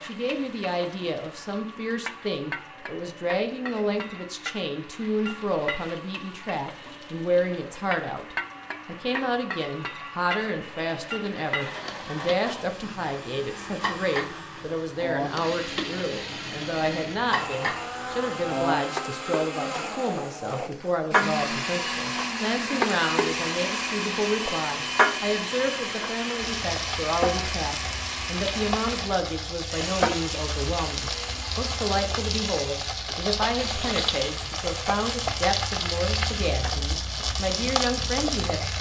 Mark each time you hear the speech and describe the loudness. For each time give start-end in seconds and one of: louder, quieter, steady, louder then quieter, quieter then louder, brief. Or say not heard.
0.0-38.7 steady.